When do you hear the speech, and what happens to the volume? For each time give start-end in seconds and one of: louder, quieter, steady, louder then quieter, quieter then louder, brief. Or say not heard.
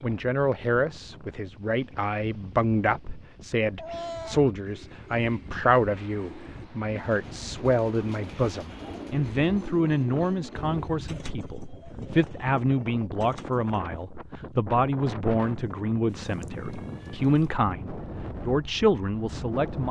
0.0-19.8 steady.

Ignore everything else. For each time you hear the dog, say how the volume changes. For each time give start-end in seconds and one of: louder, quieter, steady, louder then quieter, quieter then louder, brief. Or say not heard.
not heard.